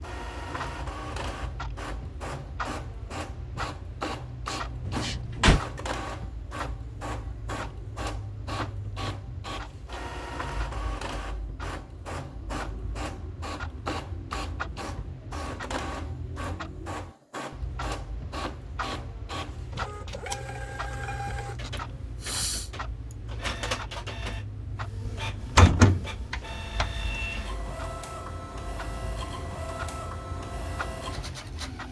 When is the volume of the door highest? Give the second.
26 s.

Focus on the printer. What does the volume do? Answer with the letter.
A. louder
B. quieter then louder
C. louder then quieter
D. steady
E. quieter
D.